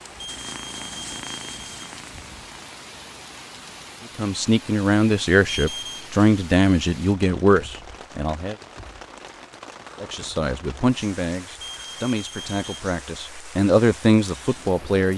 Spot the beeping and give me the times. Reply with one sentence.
You can hear the beeping from 0.1 to 2.5 s, from 5.4 to 6.0 s and from 11.5 to 12.8 s.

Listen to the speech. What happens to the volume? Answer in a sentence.
The volume of the speech goes down, then up.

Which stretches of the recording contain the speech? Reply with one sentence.
You can hear the speech from 4.2 to 8.6 s and from 10.0 to 15.1 s.